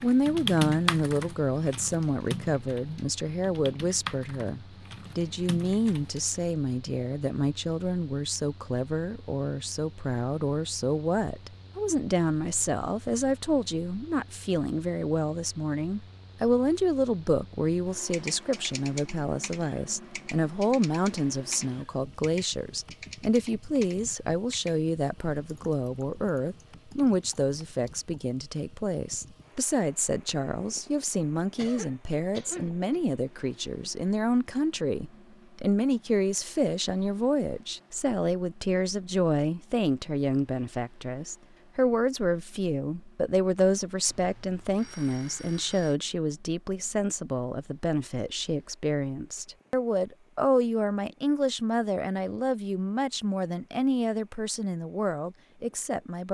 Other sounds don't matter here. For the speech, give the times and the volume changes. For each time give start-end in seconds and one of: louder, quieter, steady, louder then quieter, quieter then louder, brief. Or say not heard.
0.0-56.2 steady.